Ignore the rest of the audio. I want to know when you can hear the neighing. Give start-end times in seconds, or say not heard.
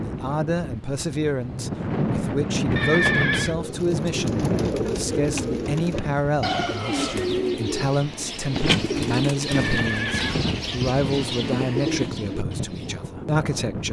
2.8-3.5, 9.4-10.4.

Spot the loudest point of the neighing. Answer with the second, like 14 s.
3 s.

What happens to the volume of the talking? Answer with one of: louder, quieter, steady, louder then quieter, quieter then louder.
steady.